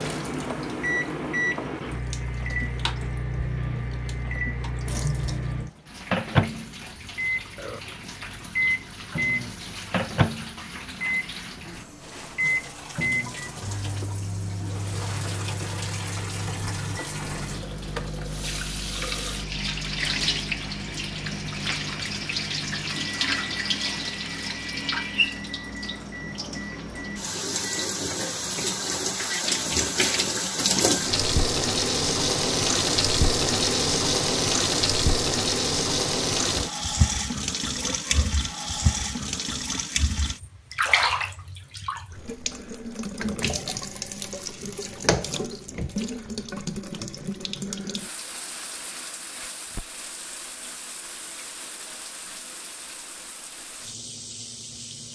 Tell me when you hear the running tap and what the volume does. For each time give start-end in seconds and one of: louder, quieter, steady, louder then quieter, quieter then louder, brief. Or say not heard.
0.0-55.1 louder then quieter.